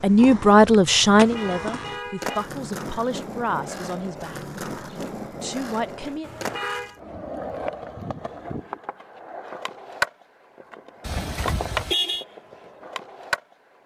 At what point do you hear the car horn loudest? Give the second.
12 s.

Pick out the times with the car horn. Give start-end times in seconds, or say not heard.
1.1-2.5, 6.2-7.0, 11.0-12.2.